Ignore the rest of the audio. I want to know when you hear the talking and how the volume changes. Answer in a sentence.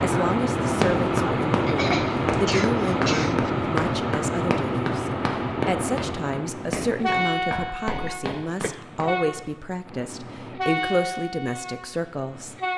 You can hear the talking from 0.0 to 12.6 s, at a steady volume.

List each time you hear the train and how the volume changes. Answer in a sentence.
The train can be heard from 0.0 to 12.7 s, getting quieter.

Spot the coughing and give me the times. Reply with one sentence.
The coughing can be heard from 1.6 to 3.5 s and from 8.1 to 8.8 s.